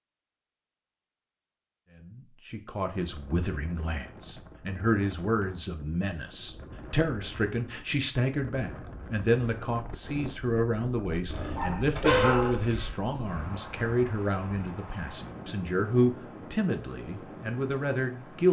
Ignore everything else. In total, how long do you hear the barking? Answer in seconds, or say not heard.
2 s.